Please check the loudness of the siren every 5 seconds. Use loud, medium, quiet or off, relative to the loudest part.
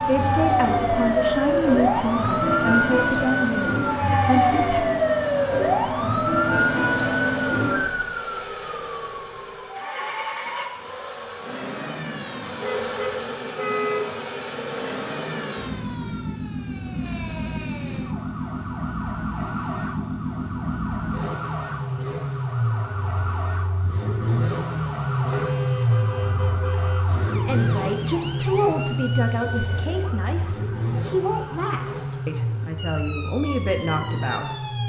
loud, loud, quiet, quiet, quiet, quiet, quiet.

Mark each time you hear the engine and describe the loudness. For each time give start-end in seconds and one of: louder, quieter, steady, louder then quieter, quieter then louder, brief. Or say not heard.
0.0-34.8 louder.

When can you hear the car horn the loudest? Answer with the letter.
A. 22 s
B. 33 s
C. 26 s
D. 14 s
D.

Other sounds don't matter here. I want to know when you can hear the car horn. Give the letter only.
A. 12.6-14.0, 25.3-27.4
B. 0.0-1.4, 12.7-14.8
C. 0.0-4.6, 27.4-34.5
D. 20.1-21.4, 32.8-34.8
A.